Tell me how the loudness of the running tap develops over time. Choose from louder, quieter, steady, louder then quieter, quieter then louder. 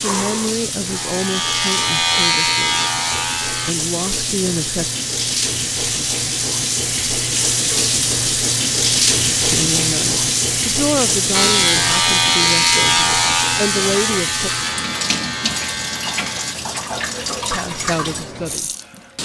louder then quieter.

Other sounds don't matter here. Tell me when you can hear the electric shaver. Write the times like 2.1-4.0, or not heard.
0.0-3.8, 11.3-16.6.